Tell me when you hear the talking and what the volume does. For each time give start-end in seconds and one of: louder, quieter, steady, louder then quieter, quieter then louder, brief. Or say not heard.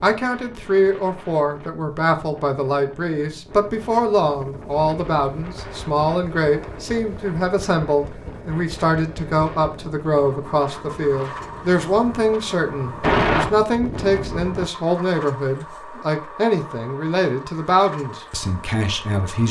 0.0-19.4 steady.